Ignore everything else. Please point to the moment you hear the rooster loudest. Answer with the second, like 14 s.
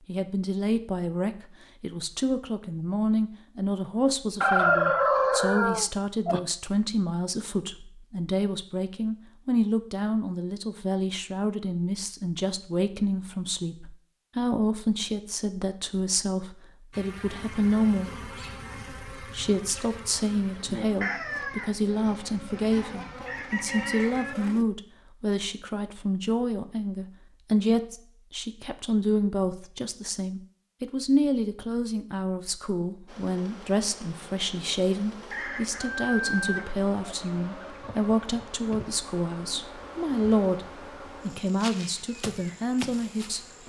5 s.